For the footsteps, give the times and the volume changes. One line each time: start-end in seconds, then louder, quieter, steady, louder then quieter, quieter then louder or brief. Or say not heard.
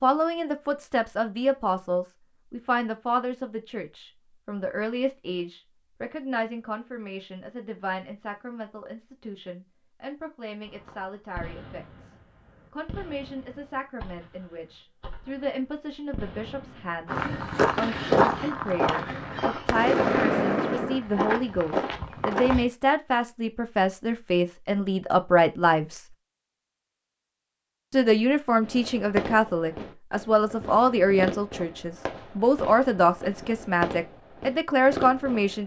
17.1-22.6 quieter.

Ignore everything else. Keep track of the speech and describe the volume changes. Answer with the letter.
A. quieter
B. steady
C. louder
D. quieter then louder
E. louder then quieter
D.